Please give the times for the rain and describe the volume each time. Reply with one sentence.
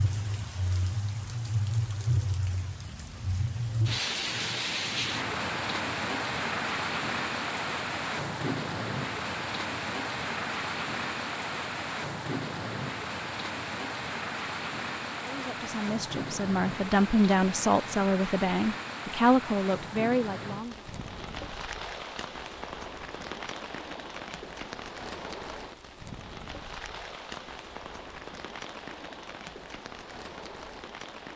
The rain can be heard from 0.0 to 31.3 s, getting quieter.